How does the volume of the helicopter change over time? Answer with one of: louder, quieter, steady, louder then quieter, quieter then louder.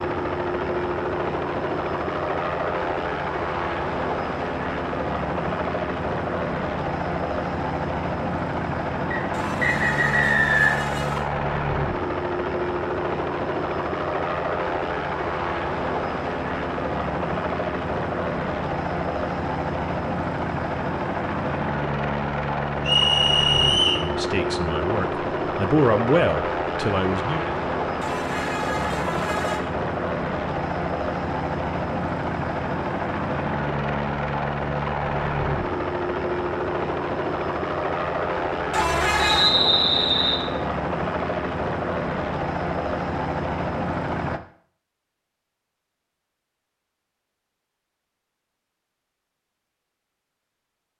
steady.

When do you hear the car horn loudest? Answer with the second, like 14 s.
39 s.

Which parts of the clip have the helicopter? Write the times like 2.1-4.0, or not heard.
0.0-44.4.